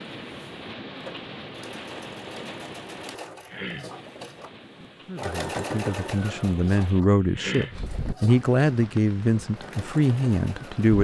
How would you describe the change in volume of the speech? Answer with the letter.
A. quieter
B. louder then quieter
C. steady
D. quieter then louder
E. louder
E.